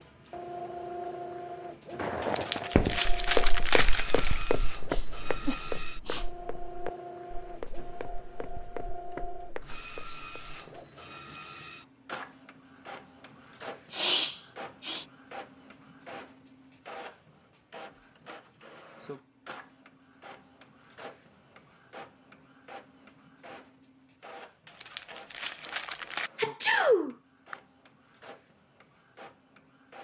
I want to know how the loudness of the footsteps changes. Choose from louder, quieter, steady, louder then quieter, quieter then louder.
quieter.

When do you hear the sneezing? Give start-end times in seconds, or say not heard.
4.9-6.2, 13.6-15.1, 26.4-27.6.